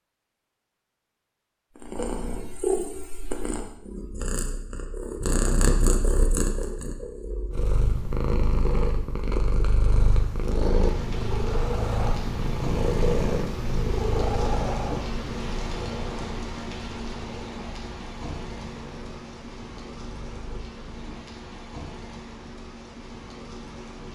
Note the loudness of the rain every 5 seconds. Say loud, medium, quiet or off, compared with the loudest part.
off, off, loud, loud, medium.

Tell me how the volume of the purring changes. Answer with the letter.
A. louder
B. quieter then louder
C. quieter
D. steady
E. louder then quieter
C.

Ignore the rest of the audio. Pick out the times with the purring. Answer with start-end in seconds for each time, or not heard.
1.8-21.1.